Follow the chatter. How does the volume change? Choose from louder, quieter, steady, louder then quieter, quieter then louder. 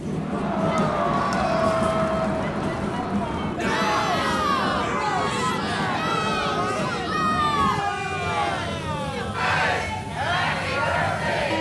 steady.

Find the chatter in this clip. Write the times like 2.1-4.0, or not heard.
0.0-11.5.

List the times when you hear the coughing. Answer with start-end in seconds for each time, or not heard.
not heard.